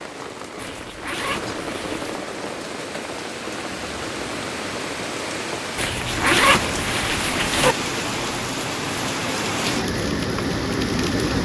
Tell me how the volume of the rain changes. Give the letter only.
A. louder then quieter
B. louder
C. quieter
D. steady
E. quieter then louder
B.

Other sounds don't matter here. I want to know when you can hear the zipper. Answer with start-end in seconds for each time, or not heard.
0.6-2.1, 5.8-7.8.